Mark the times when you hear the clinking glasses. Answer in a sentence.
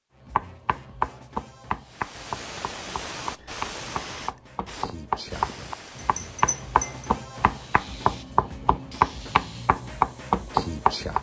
The clinking glasses can be heard from 6.0 to 7.1 s.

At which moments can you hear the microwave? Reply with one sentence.
The microwave can't be heard in this clip.